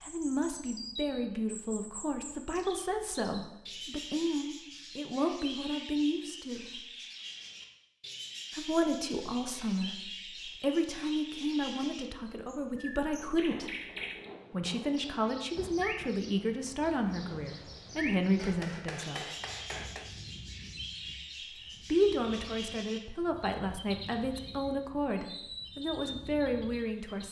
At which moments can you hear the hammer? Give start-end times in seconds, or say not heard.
18.4-20.1.